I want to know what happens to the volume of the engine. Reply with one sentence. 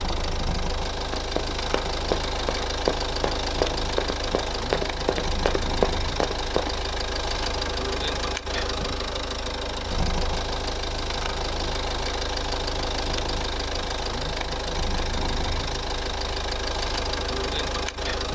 The loudness of the engine stays about the same.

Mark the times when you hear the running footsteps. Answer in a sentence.
The running footsteps can be heard from 1.0 to 6.8 s.